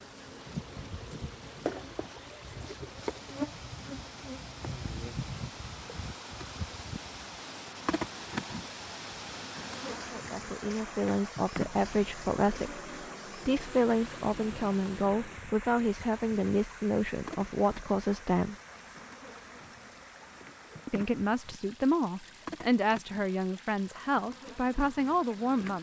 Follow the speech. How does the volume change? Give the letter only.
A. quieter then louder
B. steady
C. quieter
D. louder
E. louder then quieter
B.